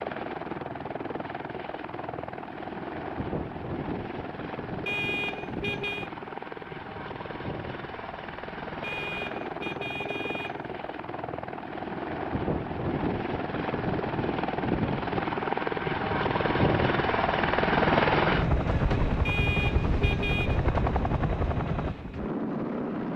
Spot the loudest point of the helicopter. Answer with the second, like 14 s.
18 s.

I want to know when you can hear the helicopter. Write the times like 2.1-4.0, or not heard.
0.0-23.1.